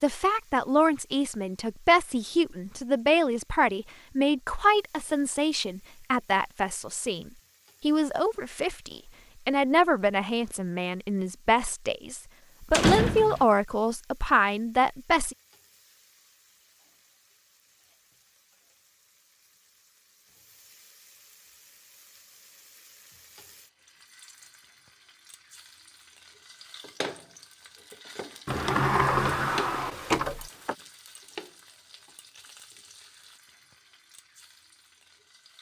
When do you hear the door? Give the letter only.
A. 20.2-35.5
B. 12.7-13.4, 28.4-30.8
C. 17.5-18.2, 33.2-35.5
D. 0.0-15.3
B.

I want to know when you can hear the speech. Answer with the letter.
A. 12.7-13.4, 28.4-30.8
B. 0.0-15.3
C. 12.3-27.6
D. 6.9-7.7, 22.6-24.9
B.